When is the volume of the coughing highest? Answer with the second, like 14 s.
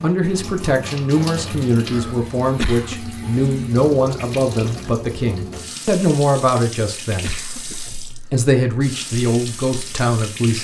3 s.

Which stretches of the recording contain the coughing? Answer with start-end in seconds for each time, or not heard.
2.5-3.0, 7.2-7.8.